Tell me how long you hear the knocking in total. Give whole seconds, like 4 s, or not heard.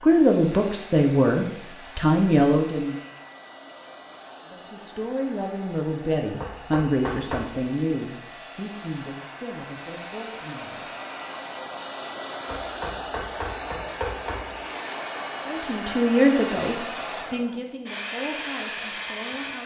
3 s.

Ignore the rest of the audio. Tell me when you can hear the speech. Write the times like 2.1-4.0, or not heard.
0.0-3.0, 4.5-10.9, 15.4-19.6.